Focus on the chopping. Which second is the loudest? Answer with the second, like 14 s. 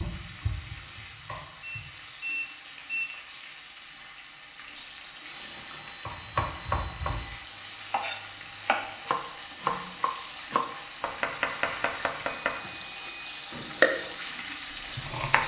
14 s.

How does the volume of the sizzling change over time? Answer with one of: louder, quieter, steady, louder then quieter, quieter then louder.
louder.